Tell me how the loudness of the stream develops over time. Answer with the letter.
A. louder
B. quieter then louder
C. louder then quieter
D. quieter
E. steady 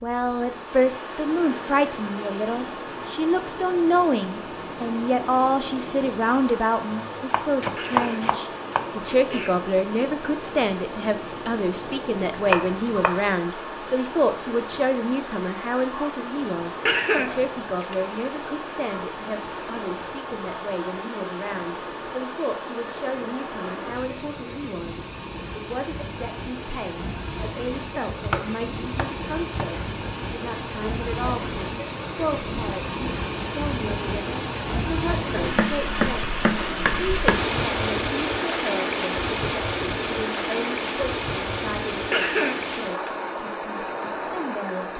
A.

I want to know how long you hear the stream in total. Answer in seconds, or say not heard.
45 s.